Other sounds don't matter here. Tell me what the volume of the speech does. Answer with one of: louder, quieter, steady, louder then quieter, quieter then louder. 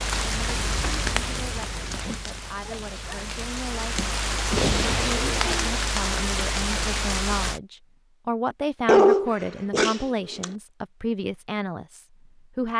louder.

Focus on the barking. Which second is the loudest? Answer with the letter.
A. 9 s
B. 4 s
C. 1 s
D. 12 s
A.